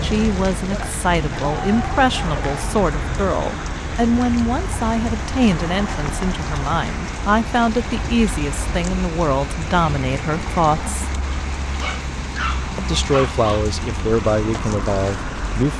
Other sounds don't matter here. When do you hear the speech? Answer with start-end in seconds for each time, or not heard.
0.0-11.0, 12.8-15.7.